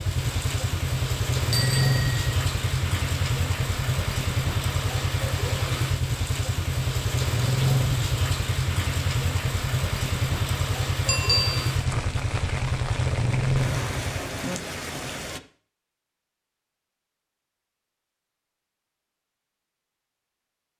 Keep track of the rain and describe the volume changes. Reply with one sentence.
The loudness of the rain stays about the same.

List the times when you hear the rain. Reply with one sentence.
The rain can be heard from 0.0 to 15.4 s.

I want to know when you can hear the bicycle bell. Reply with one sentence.
The bicycle bell can be heard from 1.5 to 2.2 s and from 11.1 to 11.7 s.